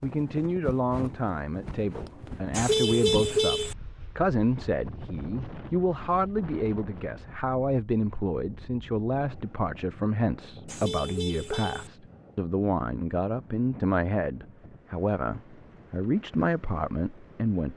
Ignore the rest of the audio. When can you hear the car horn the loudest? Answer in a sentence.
The loudest moment of the car horn is at 3 seconds.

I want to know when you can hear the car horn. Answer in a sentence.
The car horn can be heard from 2.5 to 3.8 s and from 10.7 to 11.9 s.